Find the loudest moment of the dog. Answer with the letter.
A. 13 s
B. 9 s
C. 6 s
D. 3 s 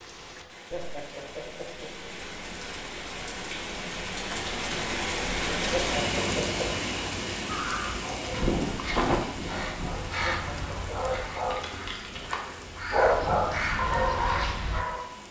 A.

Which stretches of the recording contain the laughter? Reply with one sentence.
You can hear the laughter from 0.7 to 2.1 s, from 5.7 to 6.8 s and from 10.2 to 11.4 s.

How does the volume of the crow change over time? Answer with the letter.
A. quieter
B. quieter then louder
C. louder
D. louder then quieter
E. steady
B.